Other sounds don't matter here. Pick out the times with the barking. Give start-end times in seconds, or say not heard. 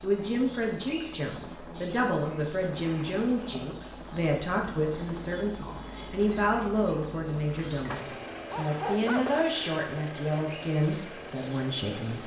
7.7-9.4.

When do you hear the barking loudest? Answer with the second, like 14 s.
9 s.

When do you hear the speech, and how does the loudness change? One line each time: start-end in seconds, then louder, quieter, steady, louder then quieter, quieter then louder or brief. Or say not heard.
0.0-12.2 steady.